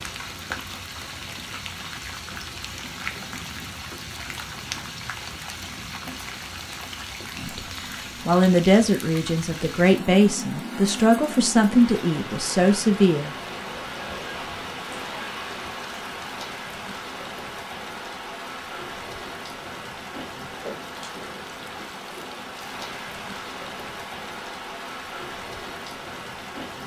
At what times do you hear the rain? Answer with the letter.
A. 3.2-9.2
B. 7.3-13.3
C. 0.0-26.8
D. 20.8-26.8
C.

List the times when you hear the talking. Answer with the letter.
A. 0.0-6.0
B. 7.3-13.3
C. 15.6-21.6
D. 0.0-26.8
B.